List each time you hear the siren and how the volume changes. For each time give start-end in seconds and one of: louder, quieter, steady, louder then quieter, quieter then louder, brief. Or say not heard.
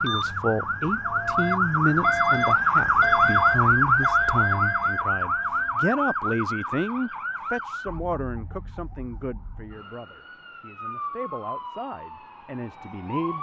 0.0-13.3 quieter then louder.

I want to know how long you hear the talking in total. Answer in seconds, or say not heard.
13 s.